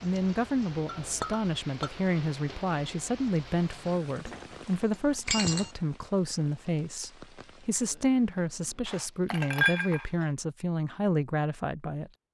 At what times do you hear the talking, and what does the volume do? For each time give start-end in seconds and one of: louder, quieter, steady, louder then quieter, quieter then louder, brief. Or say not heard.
0.0-12.1 steady.